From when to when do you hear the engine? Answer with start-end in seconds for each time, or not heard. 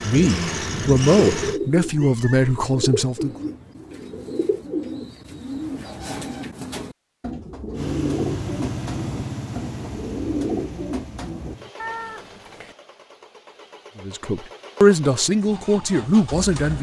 0.0-1.6, 7.7-16.7.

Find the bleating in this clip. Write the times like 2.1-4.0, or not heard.
not heard.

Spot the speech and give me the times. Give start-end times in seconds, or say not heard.
0.0-3.4, 14.0-16.7.